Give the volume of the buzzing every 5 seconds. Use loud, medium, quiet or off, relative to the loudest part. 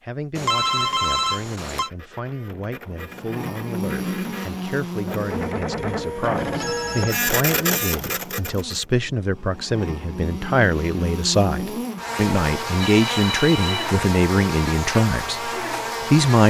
loud, medium, loud, loud.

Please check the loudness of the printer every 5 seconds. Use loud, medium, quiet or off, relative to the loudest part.
quiet, loud, off, off.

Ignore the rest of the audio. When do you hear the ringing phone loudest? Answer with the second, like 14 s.
1 s.